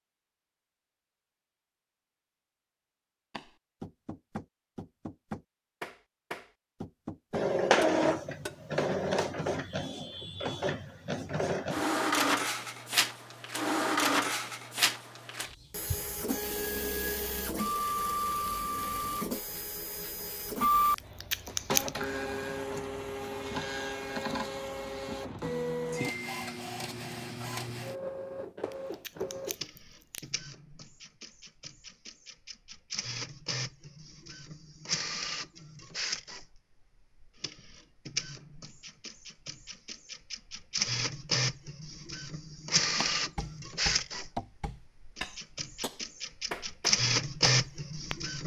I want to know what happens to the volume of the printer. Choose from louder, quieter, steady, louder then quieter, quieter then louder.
quieter then louder.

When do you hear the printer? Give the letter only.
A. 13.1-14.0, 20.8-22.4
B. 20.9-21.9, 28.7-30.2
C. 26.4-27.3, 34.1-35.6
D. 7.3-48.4
D.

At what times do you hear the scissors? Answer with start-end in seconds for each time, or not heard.
20.9-21.9, 28.7-30.2.